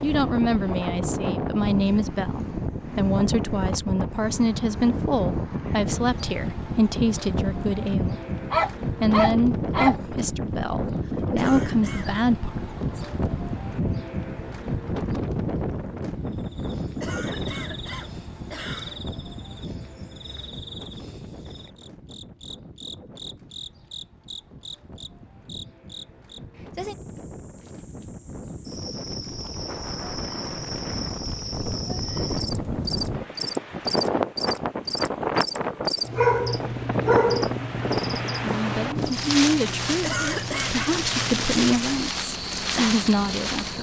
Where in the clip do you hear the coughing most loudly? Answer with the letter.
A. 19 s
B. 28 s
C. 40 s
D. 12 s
C.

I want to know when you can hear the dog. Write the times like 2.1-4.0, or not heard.
8.5-9.9, 35.5-37.5.